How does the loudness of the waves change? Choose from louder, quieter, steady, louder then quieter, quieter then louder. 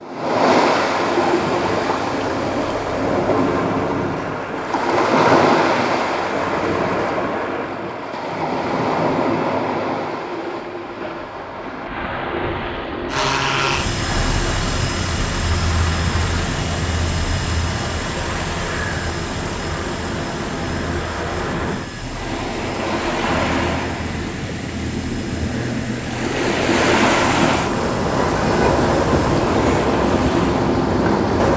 quieter then louder.